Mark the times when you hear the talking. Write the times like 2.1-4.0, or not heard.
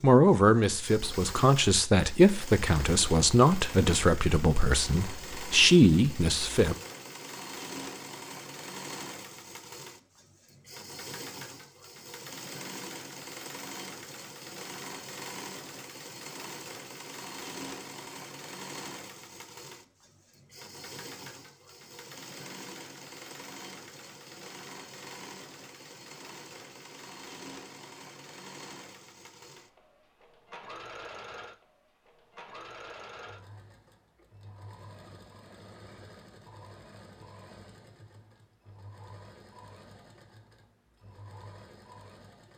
0.0-6.8.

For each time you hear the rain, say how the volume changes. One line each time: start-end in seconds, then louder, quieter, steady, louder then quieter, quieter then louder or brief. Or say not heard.
not heard.